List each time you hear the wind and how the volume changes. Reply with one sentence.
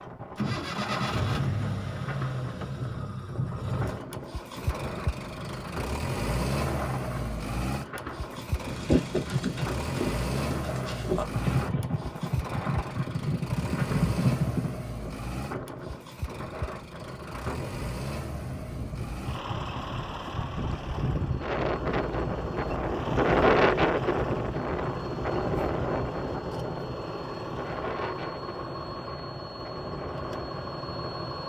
The wind can be heard from 0.0 to 31.4 s, getting louder then quieter.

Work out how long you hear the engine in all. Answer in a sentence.
You can hear the engine for 31 seconds altogether.